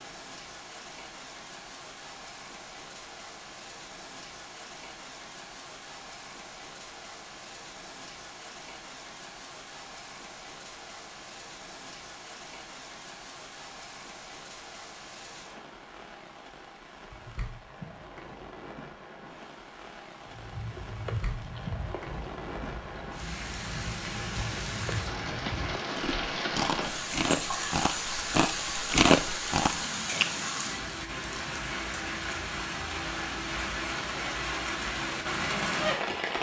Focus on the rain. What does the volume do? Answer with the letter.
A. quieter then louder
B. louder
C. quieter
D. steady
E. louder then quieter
B.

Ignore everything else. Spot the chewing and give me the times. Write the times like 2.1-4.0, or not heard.
20.2-30.6.